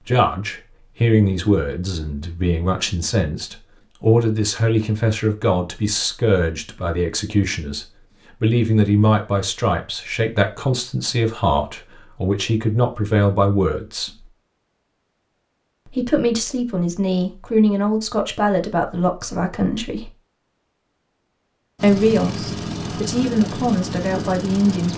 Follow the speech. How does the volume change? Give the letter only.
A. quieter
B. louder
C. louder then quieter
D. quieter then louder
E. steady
E.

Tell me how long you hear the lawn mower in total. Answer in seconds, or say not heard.
3 s.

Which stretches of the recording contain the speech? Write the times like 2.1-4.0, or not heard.
0.0-14.2, 15.8-20.1, 21.8-24.9.